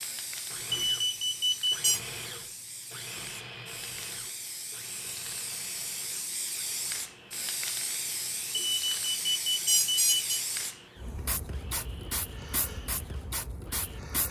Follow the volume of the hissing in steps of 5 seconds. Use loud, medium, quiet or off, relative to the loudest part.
medium, loud, loud.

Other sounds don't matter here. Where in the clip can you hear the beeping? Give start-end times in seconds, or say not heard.
0.7-2.0, 8.5-10.4.